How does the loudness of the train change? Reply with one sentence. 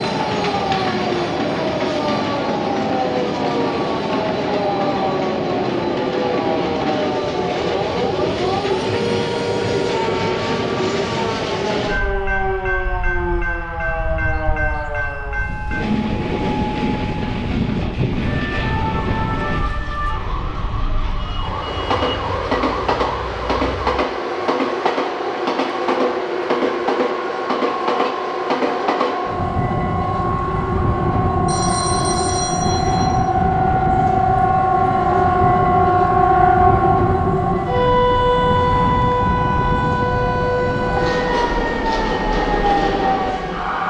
The volume of the train stays about the same.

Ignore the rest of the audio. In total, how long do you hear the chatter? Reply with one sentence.
The chatter can't be heard in this clip.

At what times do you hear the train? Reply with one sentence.
You can hear the train from 0.0 to 43.8 s.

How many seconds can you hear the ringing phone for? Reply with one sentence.
You can hear the ringing phone for 2 seconds altogether.